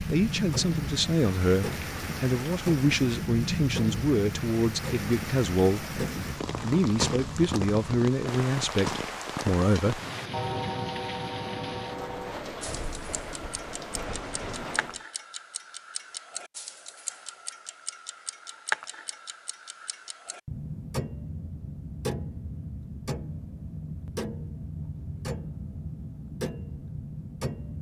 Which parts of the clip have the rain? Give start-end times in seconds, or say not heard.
0.0-15.1.